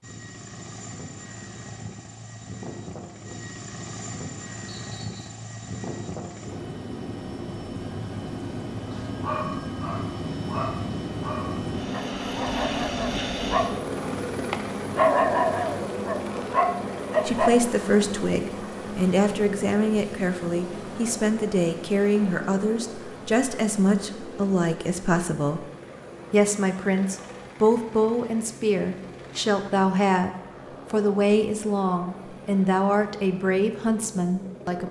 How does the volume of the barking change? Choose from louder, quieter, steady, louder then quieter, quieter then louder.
louder.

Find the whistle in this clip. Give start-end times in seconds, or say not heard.
4.7-5.3.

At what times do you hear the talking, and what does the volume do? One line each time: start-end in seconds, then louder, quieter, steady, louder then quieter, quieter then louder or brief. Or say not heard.
17.2-25.6 steady
26.3-34.8 steady.